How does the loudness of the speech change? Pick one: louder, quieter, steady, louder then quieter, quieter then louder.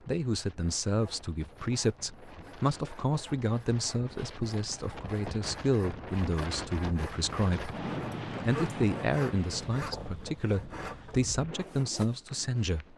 steady.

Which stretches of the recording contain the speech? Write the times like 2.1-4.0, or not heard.
0.1-7.8, 8.4-12.9.